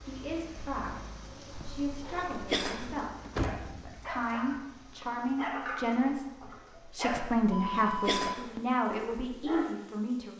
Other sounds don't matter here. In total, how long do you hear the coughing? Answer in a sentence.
The coughing can be heard for 3 seconds in total.